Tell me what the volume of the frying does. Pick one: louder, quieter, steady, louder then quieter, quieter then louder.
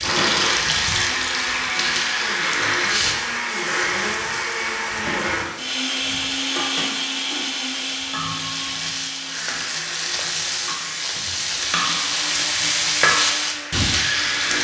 quieter then louder.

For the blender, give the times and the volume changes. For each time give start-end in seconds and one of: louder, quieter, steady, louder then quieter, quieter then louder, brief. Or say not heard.
0.0-14.5 quieter.